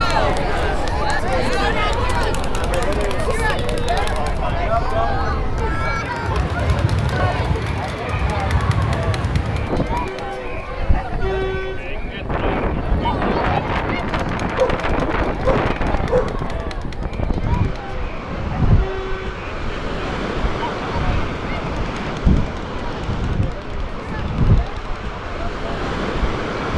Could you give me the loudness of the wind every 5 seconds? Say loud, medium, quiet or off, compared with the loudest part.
medium, loud, loud, loud, loud, loud.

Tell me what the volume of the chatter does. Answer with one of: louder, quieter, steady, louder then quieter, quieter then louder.
quieter.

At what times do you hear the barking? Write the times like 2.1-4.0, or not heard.
14.6-16.4.